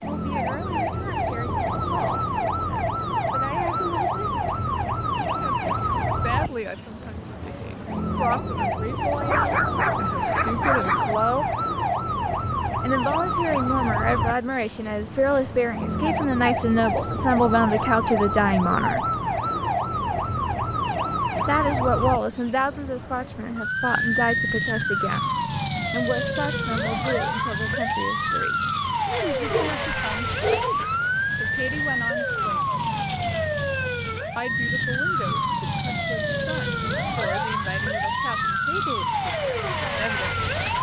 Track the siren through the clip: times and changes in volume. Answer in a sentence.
The siren can be heard from 0.0 to 40.7 s, at a steady volume.